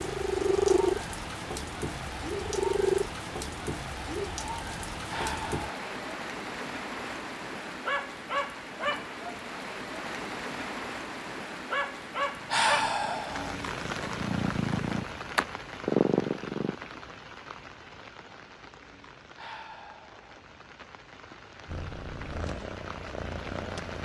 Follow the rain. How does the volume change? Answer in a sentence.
The loudness of the rain goes down.